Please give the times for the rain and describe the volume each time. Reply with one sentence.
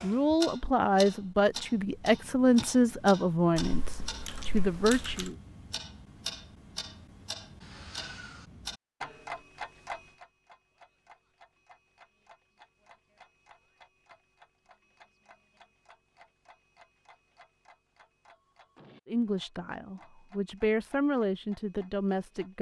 You can't hear the rain here.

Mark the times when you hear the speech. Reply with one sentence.
The speech can be heard from 0.0 to 5.3 s and from 19.1 to 22.5 s.